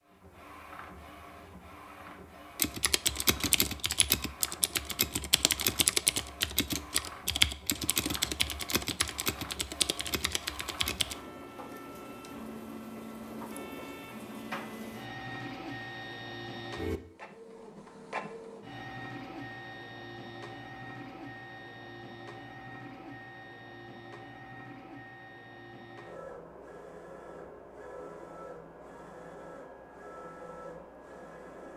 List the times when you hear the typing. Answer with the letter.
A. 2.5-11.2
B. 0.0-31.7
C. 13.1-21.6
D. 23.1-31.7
A.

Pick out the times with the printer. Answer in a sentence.
The printer can be heard from 0.0 to 31.7 s.